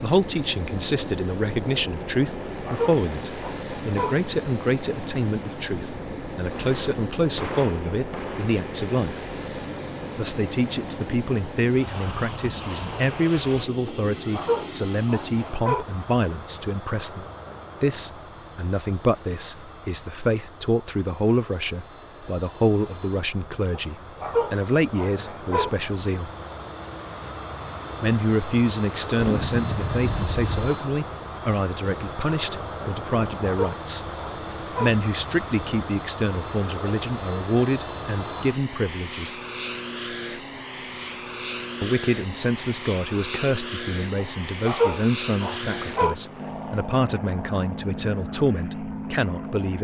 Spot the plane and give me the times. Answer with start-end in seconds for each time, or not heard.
0.0-49.7.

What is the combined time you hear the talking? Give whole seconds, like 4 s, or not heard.
44 s.